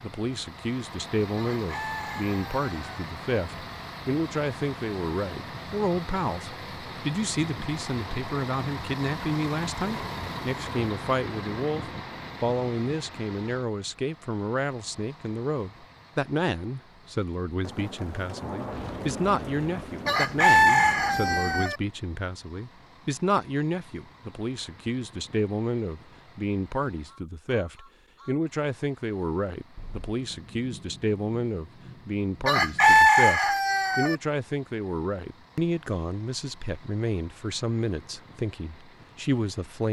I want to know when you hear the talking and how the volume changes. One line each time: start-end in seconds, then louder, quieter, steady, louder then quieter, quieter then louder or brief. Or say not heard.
0.0-39.8 steady.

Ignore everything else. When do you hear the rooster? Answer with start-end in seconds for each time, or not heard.
1.4-3.0, 20.1-21.8, 32.5-34.1.